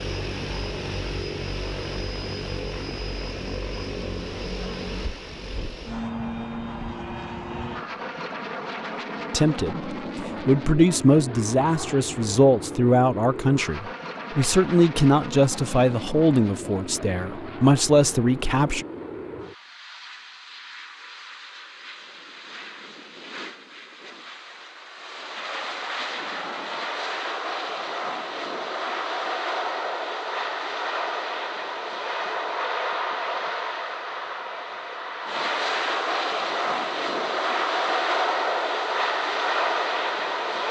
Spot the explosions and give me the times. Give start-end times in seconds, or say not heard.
not heard.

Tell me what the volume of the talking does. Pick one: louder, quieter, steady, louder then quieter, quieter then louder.
steady.